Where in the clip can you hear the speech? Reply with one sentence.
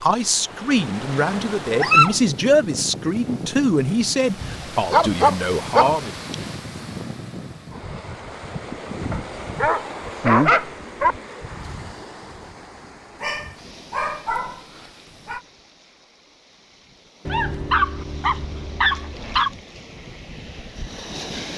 The speech can be heard from 0.0 to 6.1 s.